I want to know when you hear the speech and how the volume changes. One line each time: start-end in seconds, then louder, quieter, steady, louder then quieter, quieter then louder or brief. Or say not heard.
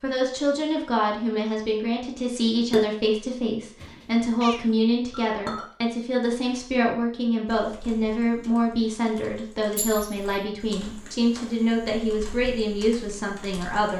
0.0-13.9 steady.